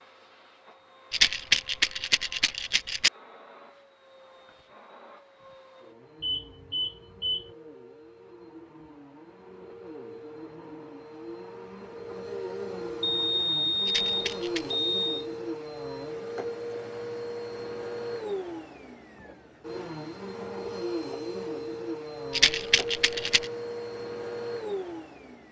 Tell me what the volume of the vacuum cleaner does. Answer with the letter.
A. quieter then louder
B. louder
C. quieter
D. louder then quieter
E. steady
B.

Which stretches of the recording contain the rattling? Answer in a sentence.
The rattling can be heard from 1.1 to 3.1 s, from 13.8 to 14.8 s and from 22.3 to 23.5 s.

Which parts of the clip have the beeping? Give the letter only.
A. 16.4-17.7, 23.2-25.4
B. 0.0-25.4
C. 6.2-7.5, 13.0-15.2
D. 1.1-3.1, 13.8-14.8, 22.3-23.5
C.